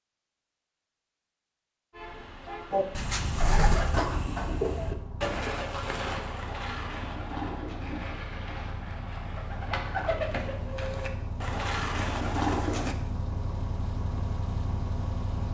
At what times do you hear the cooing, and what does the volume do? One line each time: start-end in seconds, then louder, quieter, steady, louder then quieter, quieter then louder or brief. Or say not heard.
2.7-12.9 quieter then louder.